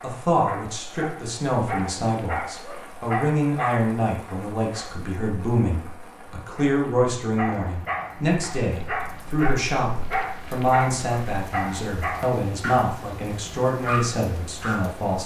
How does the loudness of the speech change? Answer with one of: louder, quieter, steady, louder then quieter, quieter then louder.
steady.